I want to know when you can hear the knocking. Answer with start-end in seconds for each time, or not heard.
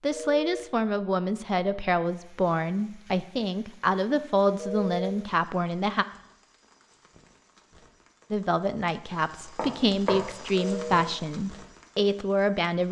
9.1-10.3.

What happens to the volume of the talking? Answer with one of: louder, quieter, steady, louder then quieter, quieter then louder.
steady.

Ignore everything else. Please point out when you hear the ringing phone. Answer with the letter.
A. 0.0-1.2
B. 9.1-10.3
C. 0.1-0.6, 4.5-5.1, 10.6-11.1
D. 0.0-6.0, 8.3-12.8
C.